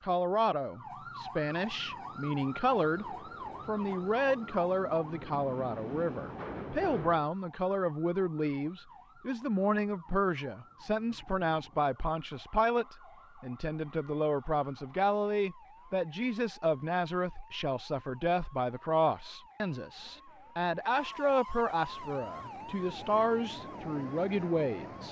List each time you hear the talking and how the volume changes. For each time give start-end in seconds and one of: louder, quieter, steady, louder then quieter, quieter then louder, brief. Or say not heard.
0.0-25.0 steady.